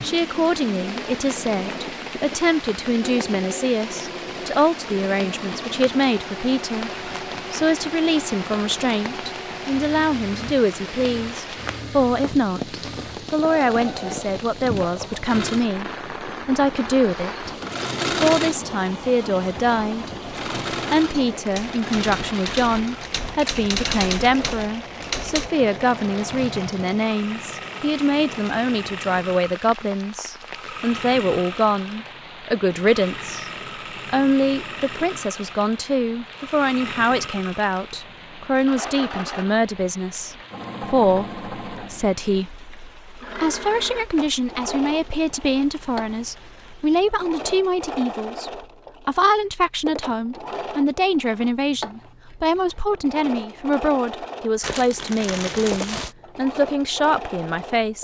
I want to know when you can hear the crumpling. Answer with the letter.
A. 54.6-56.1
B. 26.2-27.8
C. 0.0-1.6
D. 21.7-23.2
A.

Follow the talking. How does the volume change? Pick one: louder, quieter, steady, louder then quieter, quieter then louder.
steady.